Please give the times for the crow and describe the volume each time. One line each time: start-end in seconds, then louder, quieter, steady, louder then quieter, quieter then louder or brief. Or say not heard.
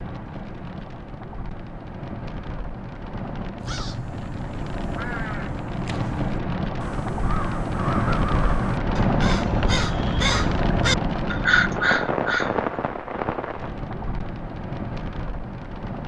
3.6-12.6 louder.